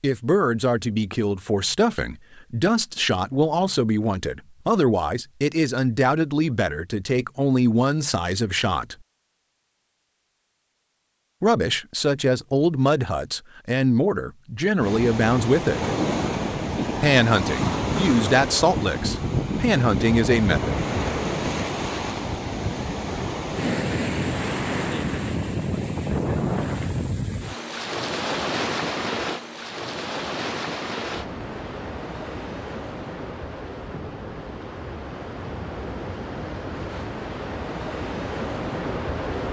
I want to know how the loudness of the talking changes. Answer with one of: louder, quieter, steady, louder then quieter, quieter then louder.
steady.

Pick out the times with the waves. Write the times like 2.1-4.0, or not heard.
14.8-39.4.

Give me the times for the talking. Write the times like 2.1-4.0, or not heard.
0.0-8.9, 11.4-15.8, 17.0-20.7.